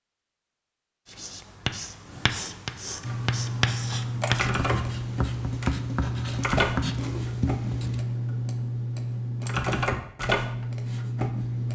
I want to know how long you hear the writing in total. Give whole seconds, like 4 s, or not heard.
7 s.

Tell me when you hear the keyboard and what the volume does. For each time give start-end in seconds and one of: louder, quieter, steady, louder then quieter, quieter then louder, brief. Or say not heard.
3.0-11.7 steady.